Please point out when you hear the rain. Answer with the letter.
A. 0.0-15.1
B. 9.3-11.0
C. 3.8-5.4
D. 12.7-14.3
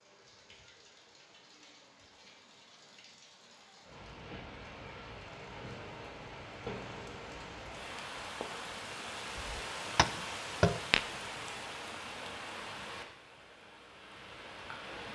A.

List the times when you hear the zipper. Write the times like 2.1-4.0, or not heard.
not heard.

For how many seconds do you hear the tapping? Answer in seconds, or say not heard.
2 s.